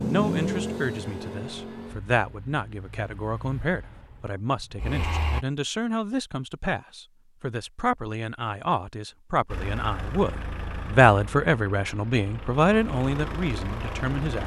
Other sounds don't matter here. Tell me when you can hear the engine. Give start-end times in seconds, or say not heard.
0.0-5.5, 9.4-14.4.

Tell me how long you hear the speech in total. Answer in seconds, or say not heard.
14 s.